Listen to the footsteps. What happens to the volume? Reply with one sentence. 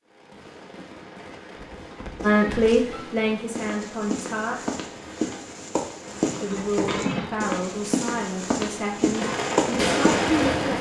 The volume of the footsteps goes up.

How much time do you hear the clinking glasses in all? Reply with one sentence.
You can hear the clinking glasses for 2 seconds altogether.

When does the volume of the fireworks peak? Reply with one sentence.
The loudest moment of the fireworks is at 10 seconds.